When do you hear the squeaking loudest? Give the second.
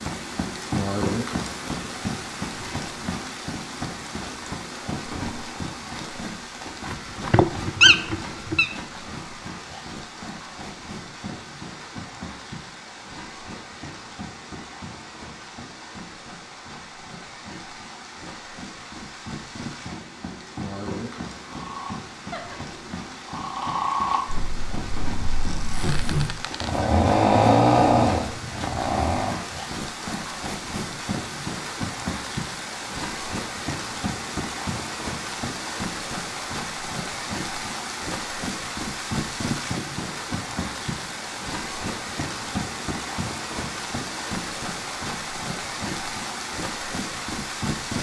8 s.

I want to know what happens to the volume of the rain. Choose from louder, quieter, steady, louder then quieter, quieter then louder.
quieter then louder.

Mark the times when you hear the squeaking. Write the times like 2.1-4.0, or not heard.
6.8-8.8, 25.6-26.7.